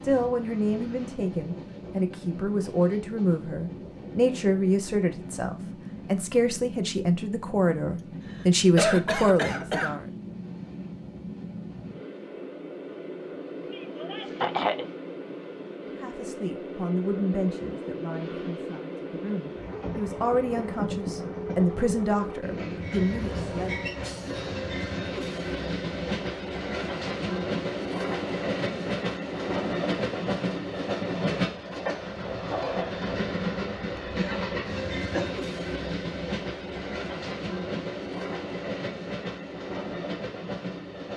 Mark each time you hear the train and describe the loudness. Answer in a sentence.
The train can be heard from 0.0 to 41.1 s, getting louder.